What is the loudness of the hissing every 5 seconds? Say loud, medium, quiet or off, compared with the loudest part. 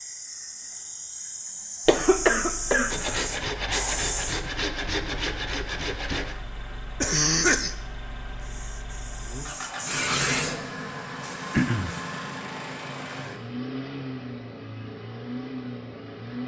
loud, medium, loud, off.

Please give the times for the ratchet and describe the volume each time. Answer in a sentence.
You can't hear the ratchet here.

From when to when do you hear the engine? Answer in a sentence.
You can hear the engine from 1.9 to 16.4 s.